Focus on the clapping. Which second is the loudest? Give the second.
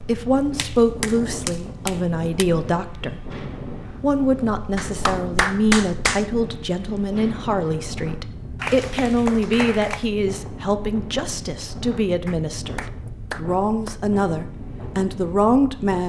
6 s.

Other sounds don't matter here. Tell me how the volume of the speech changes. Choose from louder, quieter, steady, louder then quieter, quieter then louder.
steady.